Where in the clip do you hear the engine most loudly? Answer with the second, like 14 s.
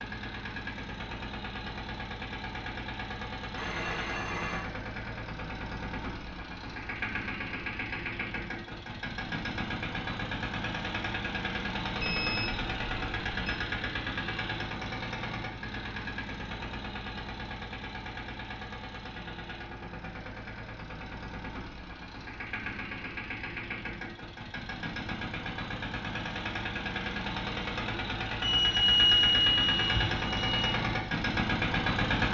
32 s.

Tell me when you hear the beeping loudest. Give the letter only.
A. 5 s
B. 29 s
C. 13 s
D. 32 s
B.